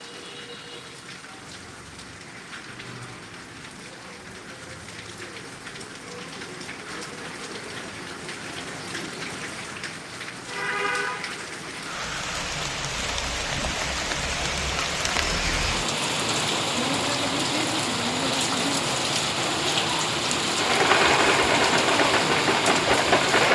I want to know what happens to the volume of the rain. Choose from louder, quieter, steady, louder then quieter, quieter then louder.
louder.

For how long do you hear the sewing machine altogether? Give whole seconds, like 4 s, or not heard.
3 s.